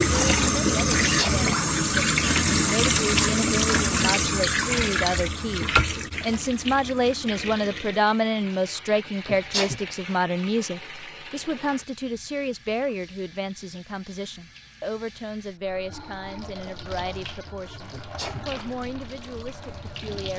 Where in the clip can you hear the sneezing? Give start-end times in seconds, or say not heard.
1.0-1.4, 9.2-9.8, 17.9-18.4.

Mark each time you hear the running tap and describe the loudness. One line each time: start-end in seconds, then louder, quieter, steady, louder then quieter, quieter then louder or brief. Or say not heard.
0.0-20.3 quieter then louder.